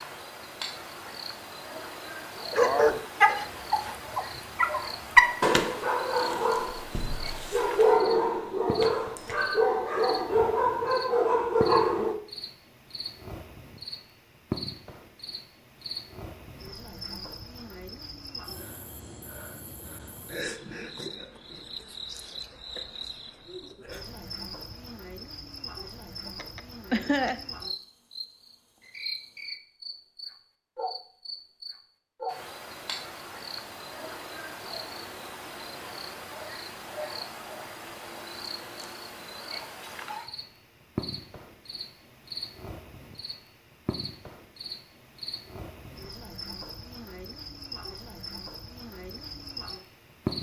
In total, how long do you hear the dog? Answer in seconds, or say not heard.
10 s.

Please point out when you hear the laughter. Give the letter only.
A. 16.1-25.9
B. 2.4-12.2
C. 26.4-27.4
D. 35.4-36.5
C.